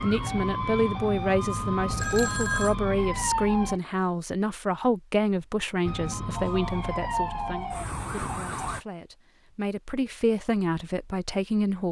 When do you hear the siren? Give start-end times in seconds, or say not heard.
0.0-3.8, 5.8-8.8.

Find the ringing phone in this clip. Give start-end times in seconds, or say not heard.
2.0-2.8, 6.3-7.8.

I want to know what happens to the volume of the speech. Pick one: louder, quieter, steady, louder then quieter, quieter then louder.
quieter then louder.